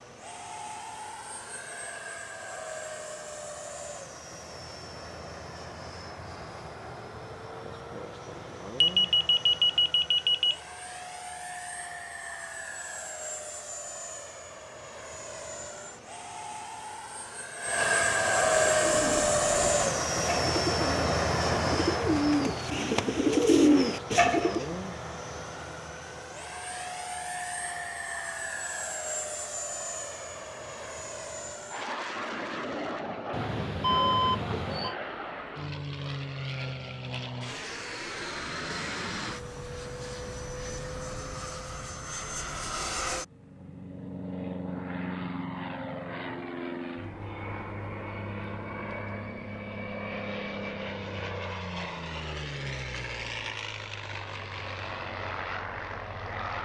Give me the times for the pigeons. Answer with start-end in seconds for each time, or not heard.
18.4-24.8.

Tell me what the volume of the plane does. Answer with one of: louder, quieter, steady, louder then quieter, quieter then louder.
louder then quieter.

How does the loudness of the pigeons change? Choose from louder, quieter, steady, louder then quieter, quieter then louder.
louder.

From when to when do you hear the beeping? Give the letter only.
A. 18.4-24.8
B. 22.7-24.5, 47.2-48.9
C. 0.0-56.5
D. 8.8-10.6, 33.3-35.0
D.